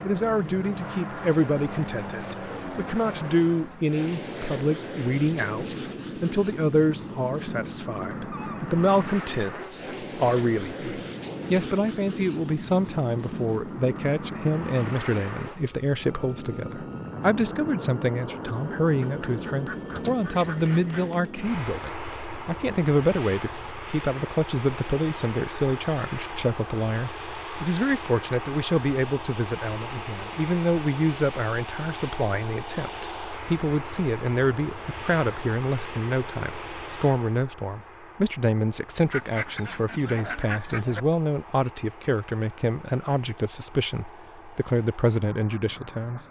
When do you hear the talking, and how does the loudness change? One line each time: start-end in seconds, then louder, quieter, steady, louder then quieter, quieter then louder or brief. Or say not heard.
0.0-46.2 steady.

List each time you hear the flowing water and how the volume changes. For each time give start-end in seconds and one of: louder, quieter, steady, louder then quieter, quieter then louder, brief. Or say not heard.
not heard.